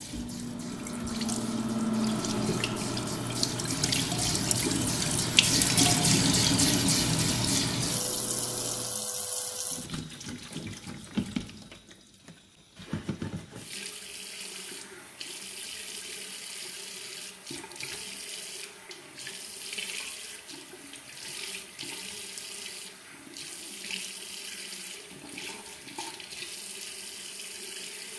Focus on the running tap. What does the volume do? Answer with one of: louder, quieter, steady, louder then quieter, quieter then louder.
quieter.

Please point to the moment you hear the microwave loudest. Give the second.
2 s.